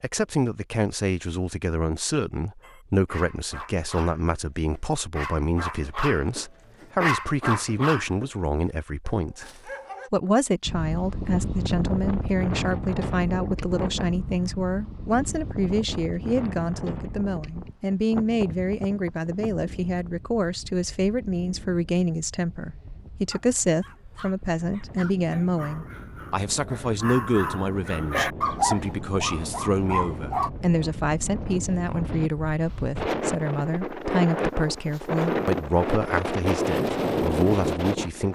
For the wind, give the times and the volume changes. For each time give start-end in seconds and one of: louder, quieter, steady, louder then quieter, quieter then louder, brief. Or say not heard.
10.7-38.3 quieter then louder.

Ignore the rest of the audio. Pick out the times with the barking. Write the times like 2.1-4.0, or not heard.
2.6-10.1, 23.1-30.5.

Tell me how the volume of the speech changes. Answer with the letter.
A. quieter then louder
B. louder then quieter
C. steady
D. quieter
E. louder
C.